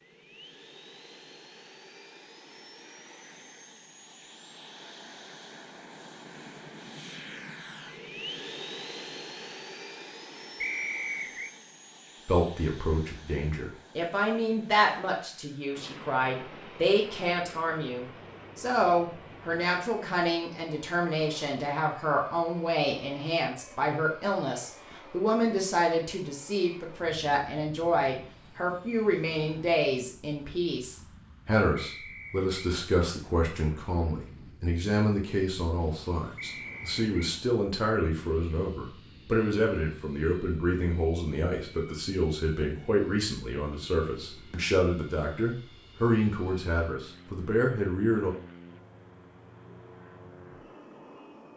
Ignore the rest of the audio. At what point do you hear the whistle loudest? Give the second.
11 s.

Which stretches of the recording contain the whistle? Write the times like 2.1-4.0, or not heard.
10.6-11.5, 31.8-32.7, 36.4-37.4.